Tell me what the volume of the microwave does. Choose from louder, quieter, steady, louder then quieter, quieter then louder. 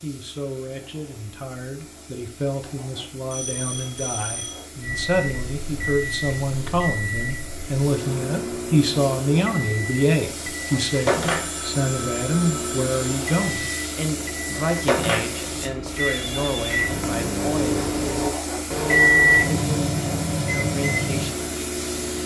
louder.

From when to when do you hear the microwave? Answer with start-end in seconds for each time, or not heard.
4.8-22.2.